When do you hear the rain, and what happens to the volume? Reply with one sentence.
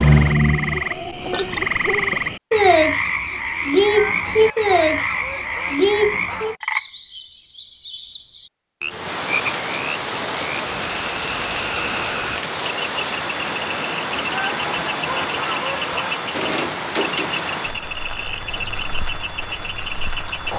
The rain can be heard from 8.8 to 20.5 s, getting quieter.